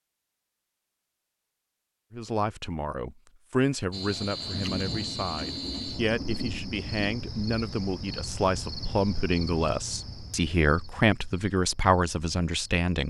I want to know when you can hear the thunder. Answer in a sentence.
The thunder can be heard from 4.0 to 7.0 s.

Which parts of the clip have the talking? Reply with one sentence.
The talking can be heard from 2.1 to 13.0 s.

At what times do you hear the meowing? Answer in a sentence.
You can't hear the meowing here.